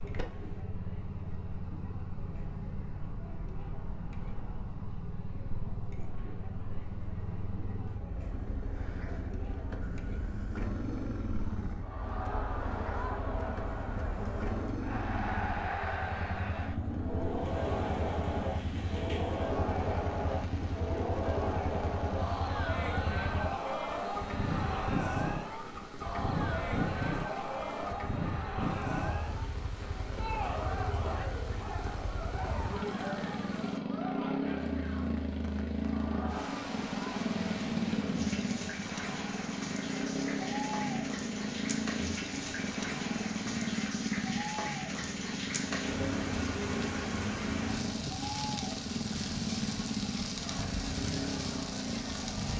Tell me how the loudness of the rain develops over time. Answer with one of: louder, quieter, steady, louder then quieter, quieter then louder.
louder.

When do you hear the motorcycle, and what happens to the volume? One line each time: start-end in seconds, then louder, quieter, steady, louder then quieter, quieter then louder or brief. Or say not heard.
0.0-52.5 louder.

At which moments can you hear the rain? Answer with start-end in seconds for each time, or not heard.
17.1-52.5.